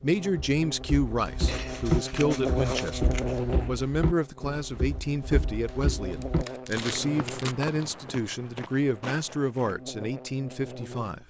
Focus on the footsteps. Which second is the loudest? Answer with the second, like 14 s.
2 s.